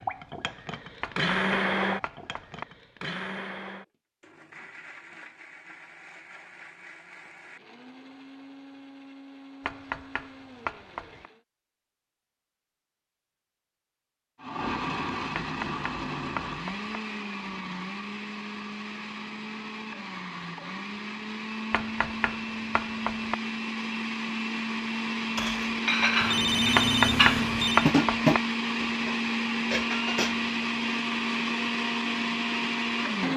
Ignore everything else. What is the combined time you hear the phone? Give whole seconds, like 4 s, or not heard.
2 s.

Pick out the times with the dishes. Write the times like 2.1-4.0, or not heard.
25.4-30.4.